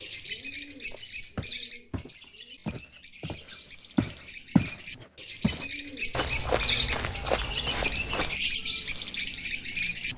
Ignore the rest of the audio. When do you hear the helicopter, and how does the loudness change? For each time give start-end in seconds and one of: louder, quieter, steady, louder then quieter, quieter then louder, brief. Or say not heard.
not heard.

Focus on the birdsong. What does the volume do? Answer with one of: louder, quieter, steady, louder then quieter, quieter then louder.
quieter then louder.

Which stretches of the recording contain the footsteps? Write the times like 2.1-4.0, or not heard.
0.9-8.4.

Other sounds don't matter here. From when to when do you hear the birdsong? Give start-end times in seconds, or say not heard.
0.0-10.1.